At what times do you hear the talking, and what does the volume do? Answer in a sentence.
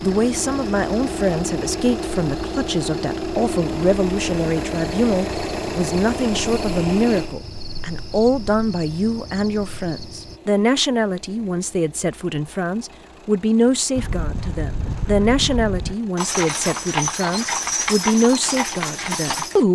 The talking can be heard from 0.0 to 19.7 s, at a steady volume.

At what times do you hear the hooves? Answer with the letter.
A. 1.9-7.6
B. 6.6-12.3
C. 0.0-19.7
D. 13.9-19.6
D.